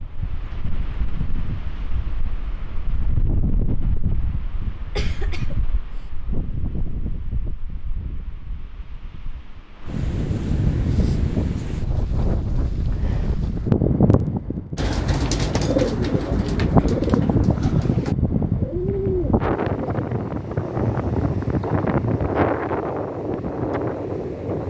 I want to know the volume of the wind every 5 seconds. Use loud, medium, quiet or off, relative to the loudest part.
medium, quiet, loud, loud, loud.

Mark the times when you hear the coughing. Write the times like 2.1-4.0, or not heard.
5.0-6.0.